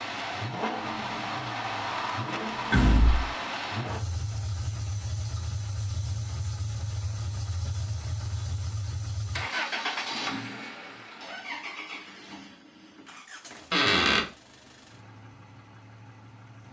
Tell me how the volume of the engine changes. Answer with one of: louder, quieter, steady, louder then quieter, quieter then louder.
quieter.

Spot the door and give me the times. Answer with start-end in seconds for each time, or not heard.
2.7-3.3, 13.7-14.2.